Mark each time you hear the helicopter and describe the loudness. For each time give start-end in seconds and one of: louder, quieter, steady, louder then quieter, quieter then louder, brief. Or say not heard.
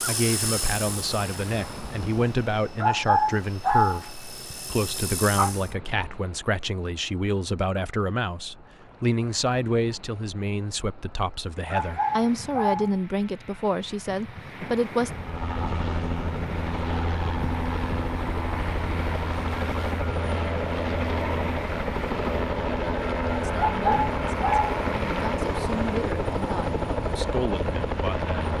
0.0-5.7 quieter then louder
15.0-28.5 steady.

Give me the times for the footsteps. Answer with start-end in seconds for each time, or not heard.
not heard.